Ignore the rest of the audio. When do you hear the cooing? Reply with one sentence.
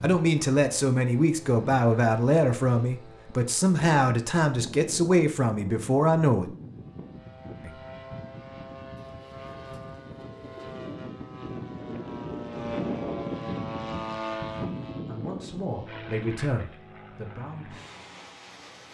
The cooing can be heard from 8.9 to 10.9 s.